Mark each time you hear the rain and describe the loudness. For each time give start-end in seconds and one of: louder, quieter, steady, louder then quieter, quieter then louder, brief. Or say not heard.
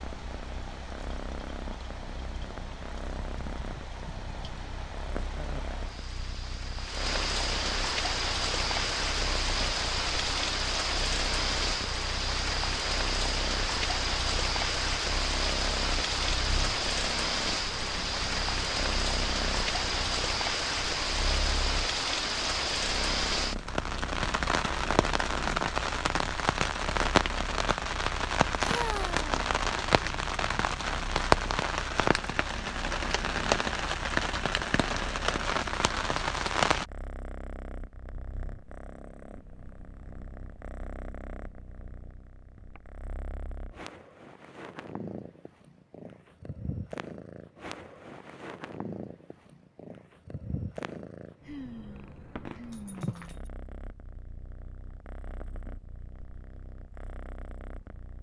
0.0-36.9 louder.